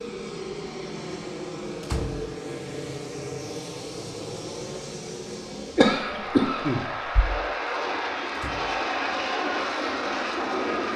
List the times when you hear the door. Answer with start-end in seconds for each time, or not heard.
1.8-2.3, 8.3-9.2.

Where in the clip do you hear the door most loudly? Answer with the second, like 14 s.
2 s.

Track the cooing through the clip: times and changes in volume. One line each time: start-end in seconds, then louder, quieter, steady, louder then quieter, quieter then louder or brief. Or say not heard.
not heard.